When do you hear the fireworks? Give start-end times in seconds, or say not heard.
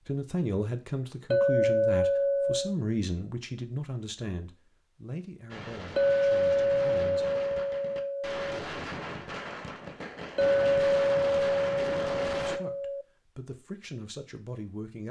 5.5-12.6.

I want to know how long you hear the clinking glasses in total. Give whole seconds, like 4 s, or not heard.
7 s.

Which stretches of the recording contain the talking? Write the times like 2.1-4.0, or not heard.
0.1-7.2, 12.4-15.0.